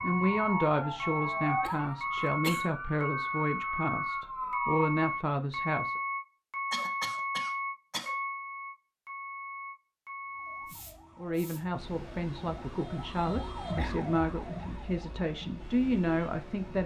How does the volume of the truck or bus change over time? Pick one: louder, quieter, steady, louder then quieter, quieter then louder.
quieter.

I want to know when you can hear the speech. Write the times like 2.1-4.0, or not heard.
0.0-6.0, 11.2-16.8.